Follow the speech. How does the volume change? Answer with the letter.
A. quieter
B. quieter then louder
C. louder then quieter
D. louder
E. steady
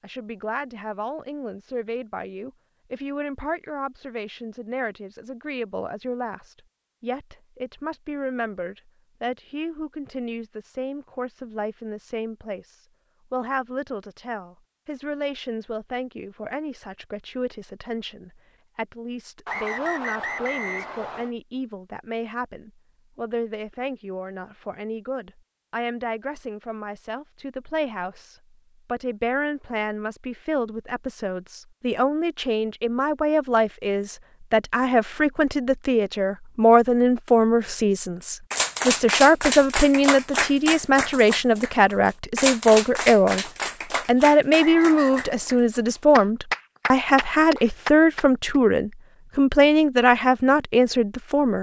D.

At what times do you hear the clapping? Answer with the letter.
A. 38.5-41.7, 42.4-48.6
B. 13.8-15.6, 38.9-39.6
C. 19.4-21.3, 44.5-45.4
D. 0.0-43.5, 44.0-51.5
A.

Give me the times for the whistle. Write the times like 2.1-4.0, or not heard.
19.4-21.3, 44.5-45.4.